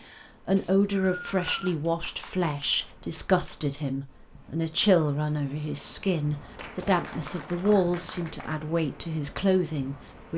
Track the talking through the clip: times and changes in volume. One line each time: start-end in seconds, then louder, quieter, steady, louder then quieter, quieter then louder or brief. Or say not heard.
0.0-10.3 steady.